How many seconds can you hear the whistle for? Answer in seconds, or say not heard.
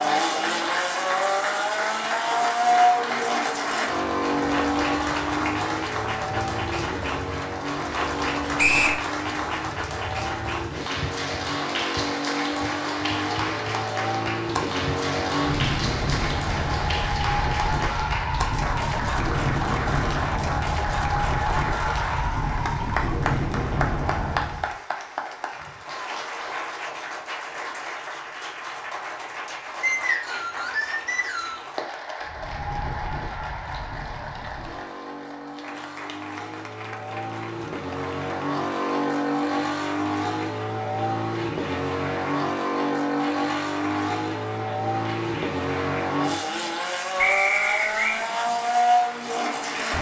3 s.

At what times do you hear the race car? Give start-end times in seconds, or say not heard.
0.0-24.8, 32.2-49.9.